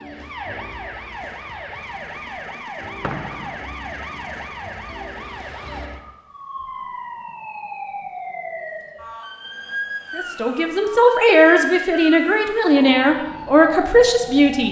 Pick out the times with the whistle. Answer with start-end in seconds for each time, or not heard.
3.0-3.6.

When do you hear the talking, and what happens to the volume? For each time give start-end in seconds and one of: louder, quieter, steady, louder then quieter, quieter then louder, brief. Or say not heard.
10.2-14.6 steady.